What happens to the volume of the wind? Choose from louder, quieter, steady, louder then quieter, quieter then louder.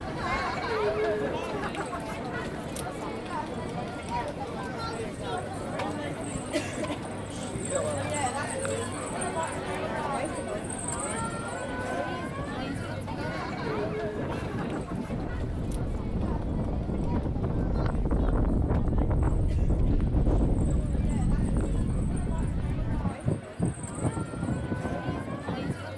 louder.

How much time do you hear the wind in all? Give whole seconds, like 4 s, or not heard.
26 s.